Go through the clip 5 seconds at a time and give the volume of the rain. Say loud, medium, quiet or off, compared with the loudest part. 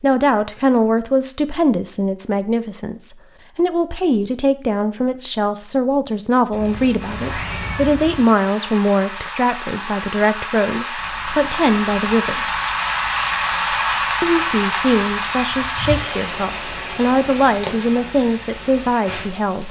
off, medium, loud, medium.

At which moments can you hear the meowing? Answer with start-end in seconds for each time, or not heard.
6.5-8.2, 15.2-16.2.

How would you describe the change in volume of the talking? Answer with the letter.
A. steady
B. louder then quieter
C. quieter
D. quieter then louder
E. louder
A.